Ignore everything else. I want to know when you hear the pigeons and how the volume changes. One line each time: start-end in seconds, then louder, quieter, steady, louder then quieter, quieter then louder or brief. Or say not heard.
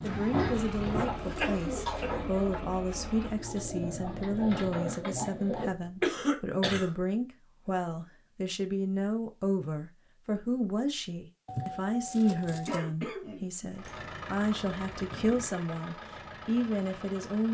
0.0-5.7 quieter then louder.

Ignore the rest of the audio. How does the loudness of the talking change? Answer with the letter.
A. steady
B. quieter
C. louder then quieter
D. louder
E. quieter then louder
A.